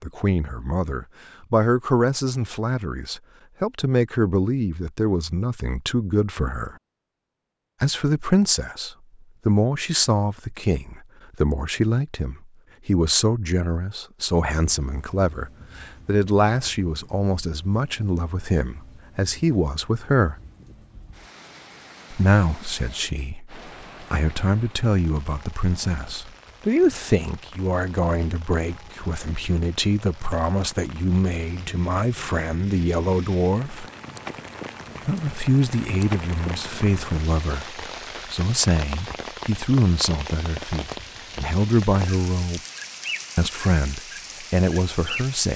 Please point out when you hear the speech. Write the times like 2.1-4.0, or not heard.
0.0-6.8, 7.8-20.4, 22.1-33.9, 35.0-42.6, 43.4-45.5.